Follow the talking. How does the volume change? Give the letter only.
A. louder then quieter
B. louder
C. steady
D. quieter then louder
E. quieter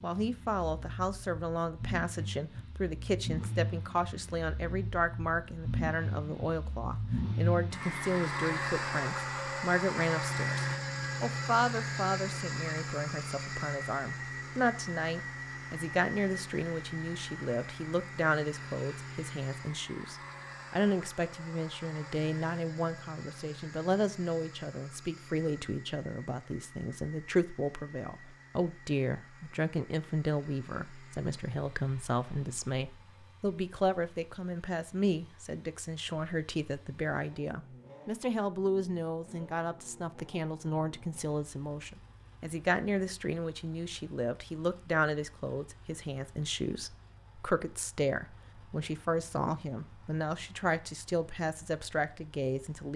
C.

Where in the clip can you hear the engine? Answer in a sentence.
You can hear the engine from 0.0 to 52.9 s.